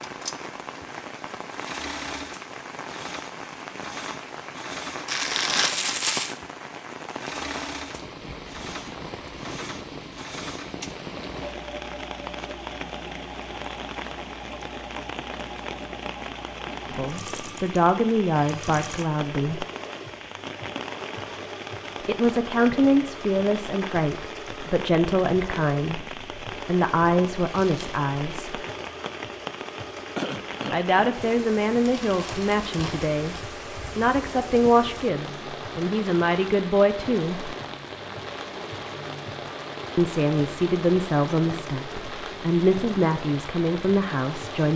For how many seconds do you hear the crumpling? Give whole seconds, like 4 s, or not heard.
3 s.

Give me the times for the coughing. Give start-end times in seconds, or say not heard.
30.1-31.1.